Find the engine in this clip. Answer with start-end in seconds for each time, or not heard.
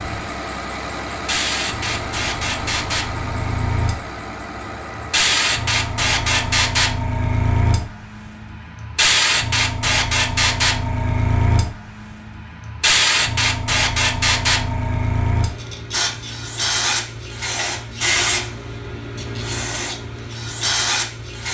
0.0-6.5.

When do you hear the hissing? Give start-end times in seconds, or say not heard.
0.0-21.4.